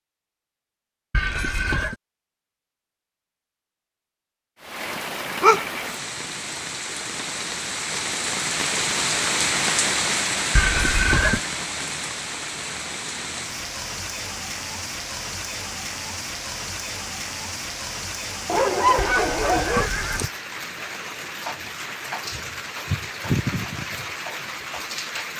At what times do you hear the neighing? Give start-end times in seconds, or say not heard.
1.1-1.9, 10.6-11.4, 18.9-20.3.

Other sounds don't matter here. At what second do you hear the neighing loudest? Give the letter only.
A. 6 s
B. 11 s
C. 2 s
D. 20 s
B.